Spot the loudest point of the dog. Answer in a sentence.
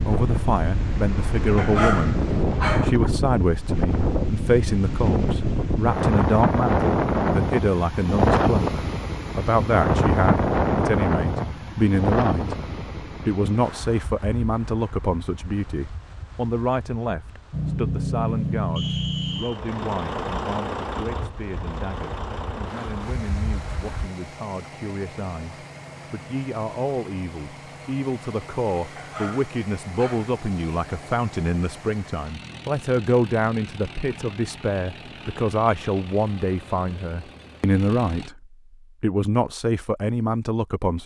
The loudest moment of the dog is at 2 seconds.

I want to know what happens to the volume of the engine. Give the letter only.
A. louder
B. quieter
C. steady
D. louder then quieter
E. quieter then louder
B.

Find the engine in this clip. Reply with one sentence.
The engine can be heard from 17.5 to 38.3 s.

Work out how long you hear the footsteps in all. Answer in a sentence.
You can't hear the footsteps here.